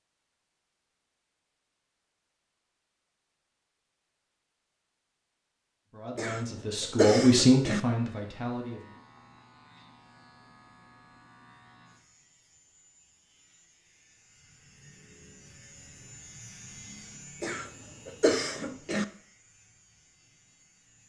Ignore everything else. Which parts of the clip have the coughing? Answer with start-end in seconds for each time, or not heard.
6.2-7.8, 17.4-19.1.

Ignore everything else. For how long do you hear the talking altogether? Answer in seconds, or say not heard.
3 s.